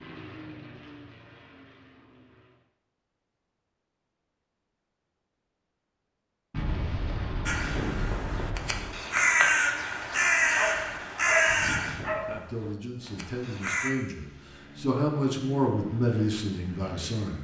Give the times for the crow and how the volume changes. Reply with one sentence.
The crow can be heard from 7.5 to 13.9 s, getting louder then quieter.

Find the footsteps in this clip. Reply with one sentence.
The footsteps can't be heard in this clip.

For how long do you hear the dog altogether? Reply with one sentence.
The dog can be heard for 2 seconds in total.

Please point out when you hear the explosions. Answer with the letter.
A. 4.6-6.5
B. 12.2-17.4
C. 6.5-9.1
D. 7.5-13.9
C.